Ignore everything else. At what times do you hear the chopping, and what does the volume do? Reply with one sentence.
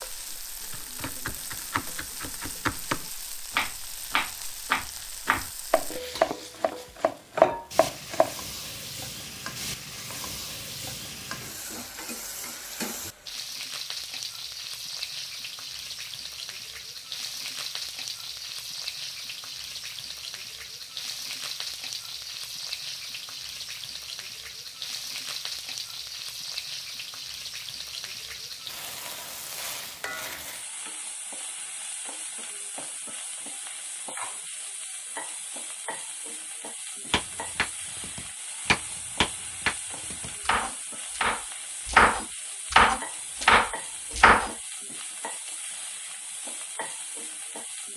You can hear the chopping from 0.6 to 8.3 s, getting louder; and from 37.1 to 44.5 s, getting louder.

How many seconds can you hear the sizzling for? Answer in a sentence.
The sizzling can be heard for 48 seconds in total.